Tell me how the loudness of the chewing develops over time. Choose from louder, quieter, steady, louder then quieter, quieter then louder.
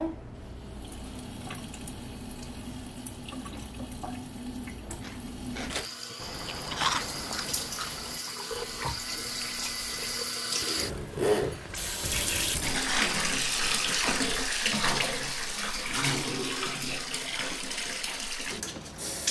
louder then quieter.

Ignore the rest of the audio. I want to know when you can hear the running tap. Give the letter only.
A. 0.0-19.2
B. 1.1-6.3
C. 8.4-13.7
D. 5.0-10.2
A.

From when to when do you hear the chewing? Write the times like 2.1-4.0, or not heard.
5.0-10.2.